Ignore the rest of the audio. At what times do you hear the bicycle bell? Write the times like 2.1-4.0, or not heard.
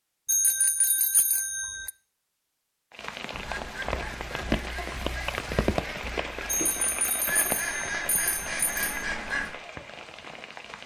0.2-1.9, 6.5-8.9.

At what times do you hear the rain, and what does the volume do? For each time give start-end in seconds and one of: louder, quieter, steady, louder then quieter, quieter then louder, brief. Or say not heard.
2.9-10.8 quieter.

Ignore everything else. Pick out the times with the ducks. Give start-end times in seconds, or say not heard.
3.4-9.6.